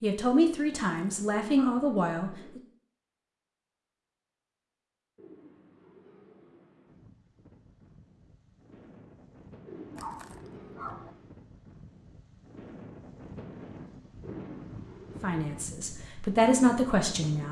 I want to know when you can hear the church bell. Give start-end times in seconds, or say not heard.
not heard.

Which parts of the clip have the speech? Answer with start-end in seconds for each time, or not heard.
0.0-2.6, 15.2-17.4.